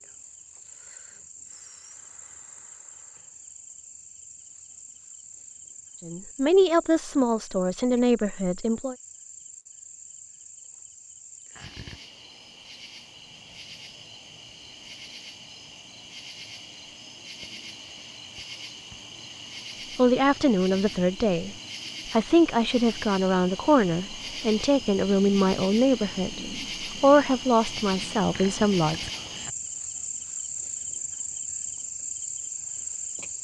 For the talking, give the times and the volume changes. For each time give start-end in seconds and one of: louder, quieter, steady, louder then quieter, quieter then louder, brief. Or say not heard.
6.0-8.9 brief
19.9-21.5 brief
22.1-29.1 steady.